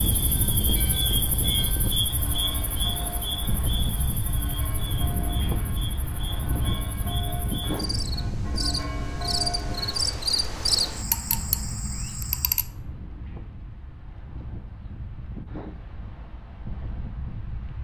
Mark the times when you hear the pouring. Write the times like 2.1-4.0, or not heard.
not heard.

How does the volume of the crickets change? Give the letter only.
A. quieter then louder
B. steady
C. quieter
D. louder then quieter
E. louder
A.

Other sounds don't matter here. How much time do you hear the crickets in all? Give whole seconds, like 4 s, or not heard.
13 s.